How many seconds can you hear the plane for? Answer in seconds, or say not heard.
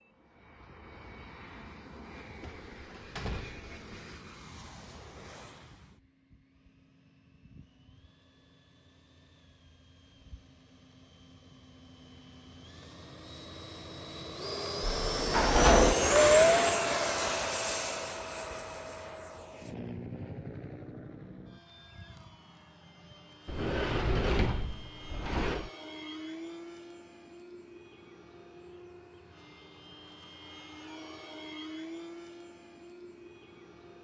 34 s.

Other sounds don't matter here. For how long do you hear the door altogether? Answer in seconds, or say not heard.
5 s.